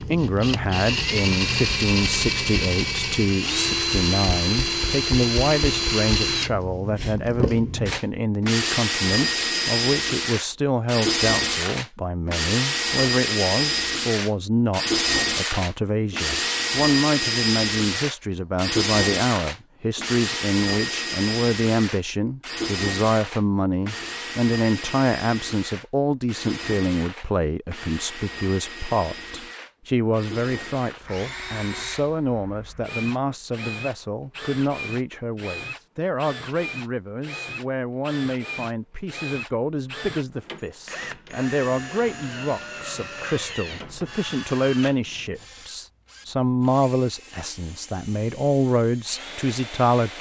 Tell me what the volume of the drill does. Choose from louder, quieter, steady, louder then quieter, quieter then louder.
quieter.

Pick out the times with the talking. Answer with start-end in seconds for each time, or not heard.
0.1-50.1.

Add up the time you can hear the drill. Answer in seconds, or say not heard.
50 s.